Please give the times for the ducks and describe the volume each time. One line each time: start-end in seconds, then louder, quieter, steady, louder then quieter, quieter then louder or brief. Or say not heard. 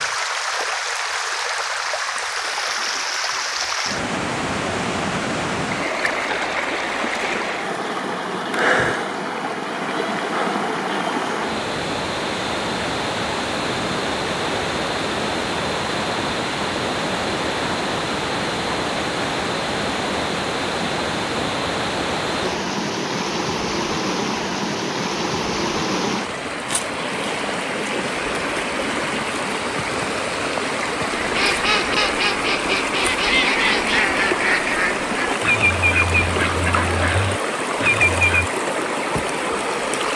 31.1-38.5 steady.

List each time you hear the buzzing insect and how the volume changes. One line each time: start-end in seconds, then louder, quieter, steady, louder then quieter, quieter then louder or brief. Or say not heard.
not heard.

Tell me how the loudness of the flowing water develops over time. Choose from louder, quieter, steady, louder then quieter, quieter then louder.
steady.